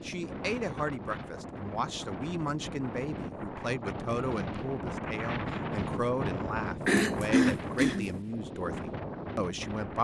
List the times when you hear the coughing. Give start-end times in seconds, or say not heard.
6.8-8.1.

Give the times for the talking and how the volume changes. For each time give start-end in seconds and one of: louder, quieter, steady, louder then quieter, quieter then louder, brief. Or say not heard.
0.0-9.9 steady.